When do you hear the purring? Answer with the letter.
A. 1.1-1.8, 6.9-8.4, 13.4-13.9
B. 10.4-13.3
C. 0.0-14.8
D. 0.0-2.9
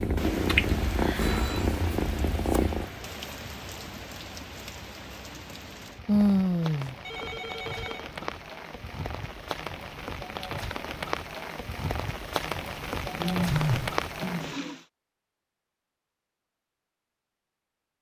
D.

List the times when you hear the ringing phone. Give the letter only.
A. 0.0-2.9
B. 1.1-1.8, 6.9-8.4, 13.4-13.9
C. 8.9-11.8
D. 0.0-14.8
B.